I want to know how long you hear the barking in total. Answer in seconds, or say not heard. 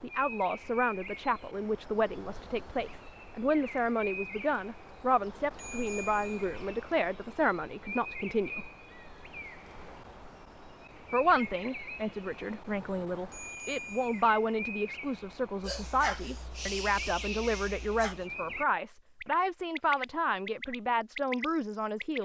3 s.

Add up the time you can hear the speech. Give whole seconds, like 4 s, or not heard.
20 s.